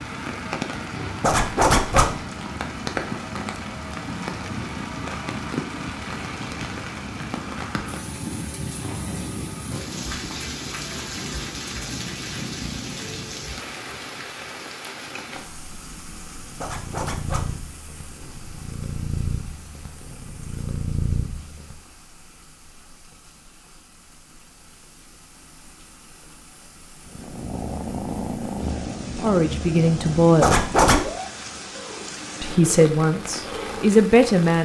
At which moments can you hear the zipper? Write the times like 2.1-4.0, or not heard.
1.2-2.1, 16.6-17.5, 30.4-31.1.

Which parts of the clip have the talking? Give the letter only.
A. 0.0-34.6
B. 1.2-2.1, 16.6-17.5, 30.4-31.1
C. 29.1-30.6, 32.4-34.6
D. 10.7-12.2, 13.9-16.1
C.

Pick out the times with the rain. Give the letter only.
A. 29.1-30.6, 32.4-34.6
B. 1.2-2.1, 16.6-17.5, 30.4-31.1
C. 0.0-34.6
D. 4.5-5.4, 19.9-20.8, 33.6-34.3
C.